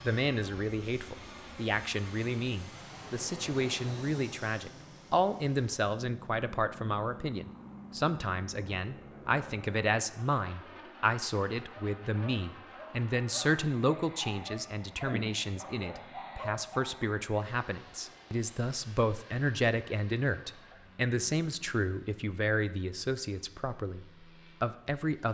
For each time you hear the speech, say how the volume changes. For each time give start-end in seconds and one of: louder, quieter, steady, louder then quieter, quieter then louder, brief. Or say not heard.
0.0-25.2 steady.